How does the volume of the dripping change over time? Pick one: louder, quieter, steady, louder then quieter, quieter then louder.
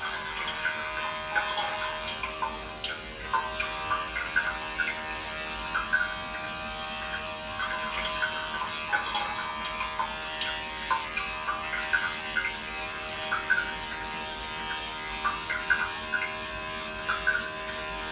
steady.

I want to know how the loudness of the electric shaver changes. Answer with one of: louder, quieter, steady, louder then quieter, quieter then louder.
steady.